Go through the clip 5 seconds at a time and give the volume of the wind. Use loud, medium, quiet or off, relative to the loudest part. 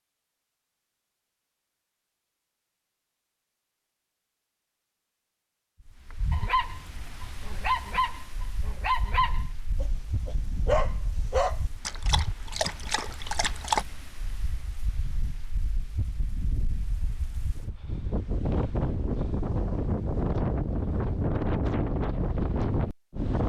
off, quiet, quiet, medium, loud.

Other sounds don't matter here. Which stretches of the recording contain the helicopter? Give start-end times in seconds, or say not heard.
not heard.